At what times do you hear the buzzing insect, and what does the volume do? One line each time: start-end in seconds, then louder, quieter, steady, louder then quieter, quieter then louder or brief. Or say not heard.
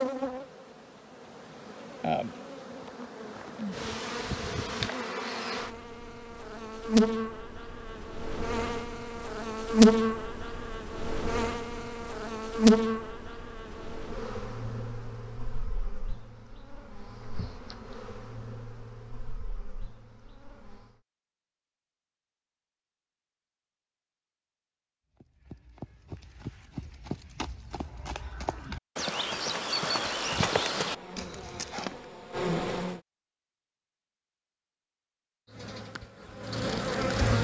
0.0-20.9 louder then quieter
30.8-33.0 brief
35.5-37.3 brief.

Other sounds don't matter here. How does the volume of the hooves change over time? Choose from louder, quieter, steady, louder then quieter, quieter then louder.
louder.